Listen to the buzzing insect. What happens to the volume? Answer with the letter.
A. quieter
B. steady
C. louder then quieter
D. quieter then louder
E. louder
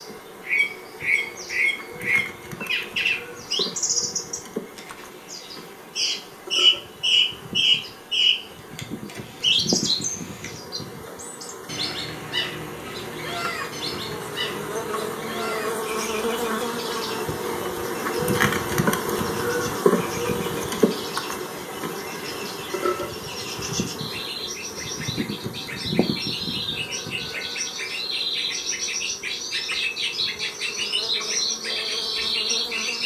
C.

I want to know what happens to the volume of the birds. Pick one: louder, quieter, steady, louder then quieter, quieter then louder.
quieter then louder.